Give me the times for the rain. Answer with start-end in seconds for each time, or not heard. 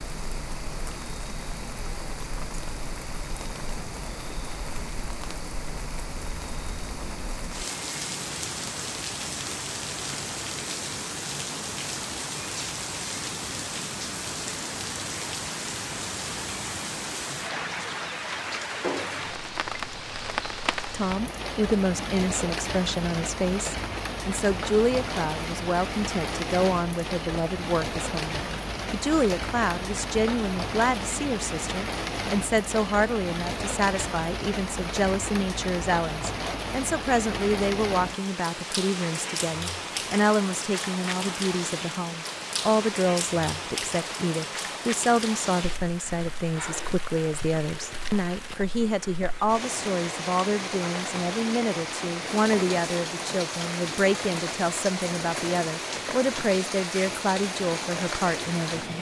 0.0-58.9.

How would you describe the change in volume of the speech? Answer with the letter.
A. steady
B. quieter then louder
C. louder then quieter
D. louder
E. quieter
A.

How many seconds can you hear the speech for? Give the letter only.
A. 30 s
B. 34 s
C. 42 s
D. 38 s
D.